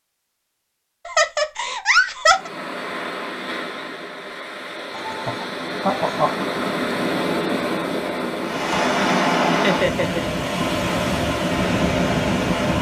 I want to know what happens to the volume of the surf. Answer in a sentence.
The loudness of the surf goes up.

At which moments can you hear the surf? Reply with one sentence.
The surf can be heard from 2.2 to 12.7 s.